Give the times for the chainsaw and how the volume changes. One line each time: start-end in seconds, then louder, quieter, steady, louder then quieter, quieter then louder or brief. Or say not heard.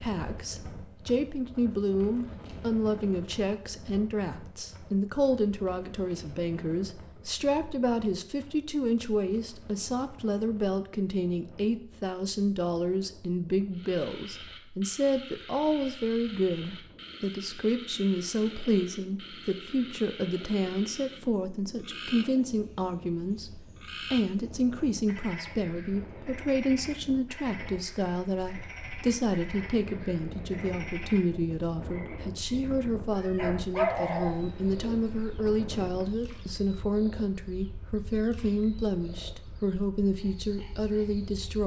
not heard.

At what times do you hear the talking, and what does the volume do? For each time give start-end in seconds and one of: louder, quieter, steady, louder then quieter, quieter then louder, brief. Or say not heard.
0.0-41.6 steady.